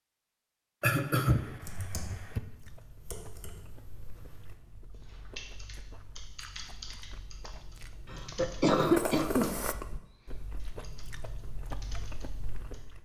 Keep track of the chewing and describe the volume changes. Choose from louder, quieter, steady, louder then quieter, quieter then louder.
louder then quieter.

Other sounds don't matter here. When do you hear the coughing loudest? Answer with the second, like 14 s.
9 s.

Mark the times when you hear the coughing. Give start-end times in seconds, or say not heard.
0.8-2.4, 8.1-9.6.